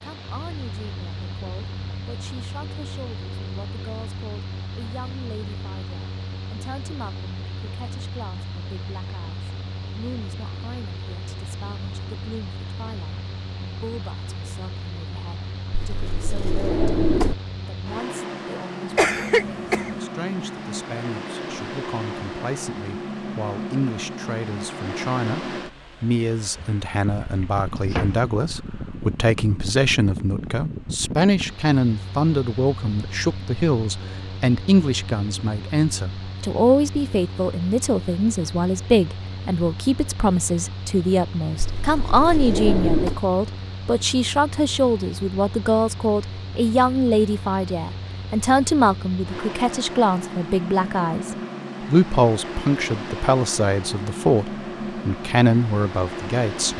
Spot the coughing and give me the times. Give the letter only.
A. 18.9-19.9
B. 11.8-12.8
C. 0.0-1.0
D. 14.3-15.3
A.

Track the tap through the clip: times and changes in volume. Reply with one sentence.
You can't hear the tap here.